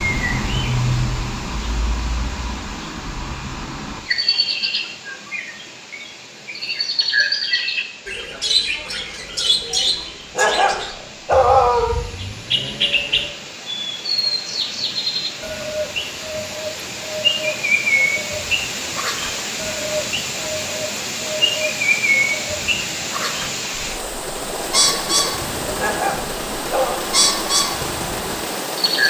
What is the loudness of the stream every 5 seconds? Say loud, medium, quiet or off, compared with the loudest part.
medium, quiet, medium, loud, loud, loud.